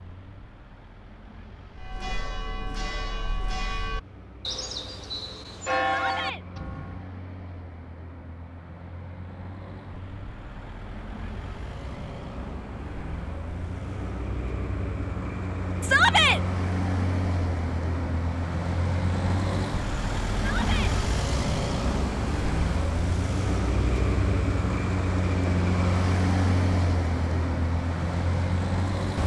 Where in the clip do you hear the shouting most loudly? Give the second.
16 s.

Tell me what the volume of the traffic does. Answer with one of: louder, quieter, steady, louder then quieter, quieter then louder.
louder.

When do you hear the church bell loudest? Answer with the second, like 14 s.
6 s.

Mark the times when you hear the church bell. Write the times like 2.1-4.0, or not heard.
1.8-7.0.